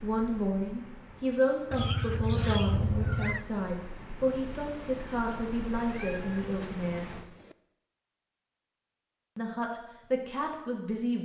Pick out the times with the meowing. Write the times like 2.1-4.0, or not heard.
1.7-3.5, 5.8-7.5.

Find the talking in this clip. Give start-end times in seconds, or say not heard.
0.0-7.1, 9.3-11.1.